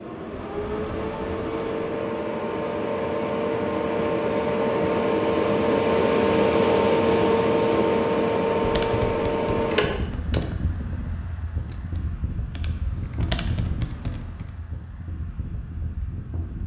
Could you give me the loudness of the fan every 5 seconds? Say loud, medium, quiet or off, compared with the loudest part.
medium, loud, quiet, quiet.